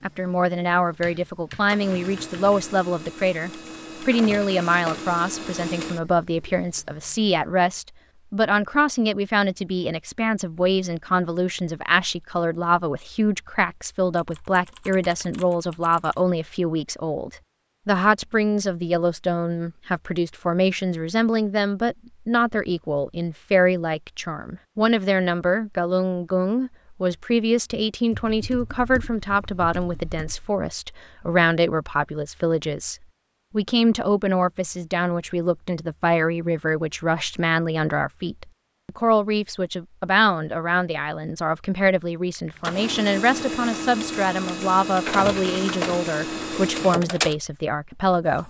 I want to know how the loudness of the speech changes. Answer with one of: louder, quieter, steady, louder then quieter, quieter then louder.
steady.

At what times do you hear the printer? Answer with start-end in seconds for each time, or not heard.
0.0-7.0, 42.6-48.4.